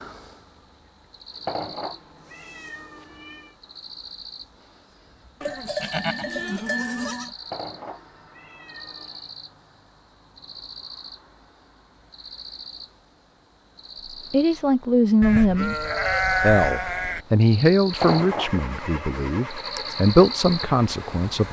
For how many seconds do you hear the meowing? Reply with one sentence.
You can hear the meowing for 5 seconds altogether.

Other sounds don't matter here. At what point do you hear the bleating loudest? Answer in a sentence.
The loudest moment of the bleating is at 16 seconds.